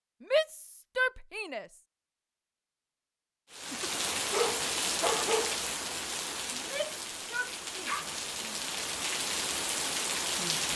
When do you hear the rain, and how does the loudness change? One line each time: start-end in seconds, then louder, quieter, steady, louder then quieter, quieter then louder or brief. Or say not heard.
3.5-10.7 quieter then louder.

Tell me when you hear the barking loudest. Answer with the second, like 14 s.
5 s.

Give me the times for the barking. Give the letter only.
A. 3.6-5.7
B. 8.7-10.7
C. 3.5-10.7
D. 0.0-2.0
A.